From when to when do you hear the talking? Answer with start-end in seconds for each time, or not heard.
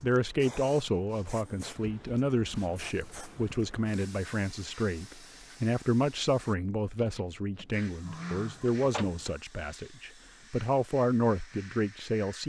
0.0-12.4.